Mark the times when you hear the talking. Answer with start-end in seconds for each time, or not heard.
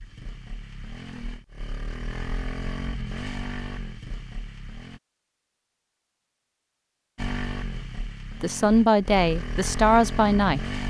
8.4-10.8.